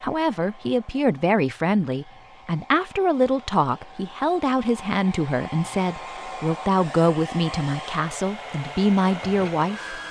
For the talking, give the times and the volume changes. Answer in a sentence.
The talking can be heard from 0.0 to 9.9 s, at a steady volume.